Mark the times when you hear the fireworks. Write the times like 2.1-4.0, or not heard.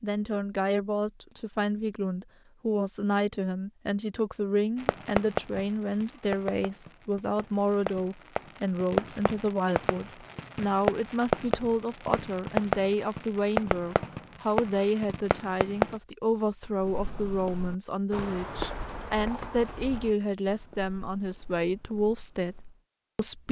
4.8-16.0.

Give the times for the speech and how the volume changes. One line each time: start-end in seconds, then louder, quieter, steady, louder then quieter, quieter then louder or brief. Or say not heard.
0.0-23.4 steady.